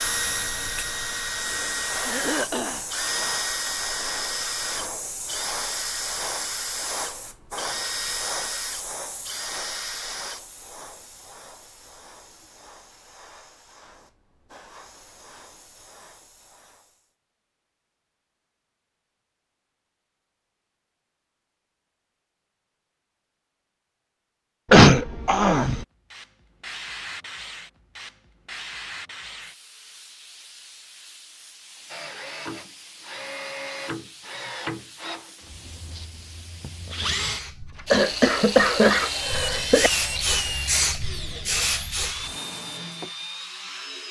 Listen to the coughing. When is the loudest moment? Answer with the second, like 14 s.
25 s.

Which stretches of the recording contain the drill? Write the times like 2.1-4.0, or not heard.
0.0-10.8, 31.9-44.0.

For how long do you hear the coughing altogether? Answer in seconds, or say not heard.
4 s.